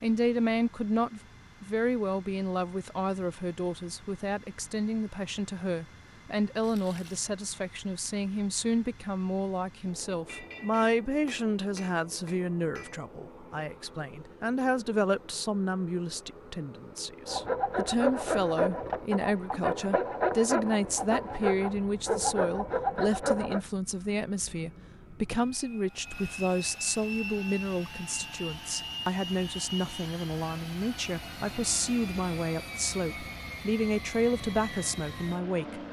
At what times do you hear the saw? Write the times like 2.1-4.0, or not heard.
17.2-23.6.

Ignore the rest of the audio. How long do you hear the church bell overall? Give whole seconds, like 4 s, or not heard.
not heard.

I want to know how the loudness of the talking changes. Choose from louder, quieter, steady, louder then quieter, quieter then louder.
steady.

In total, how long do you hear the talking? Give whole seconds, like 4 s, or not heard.
36 s.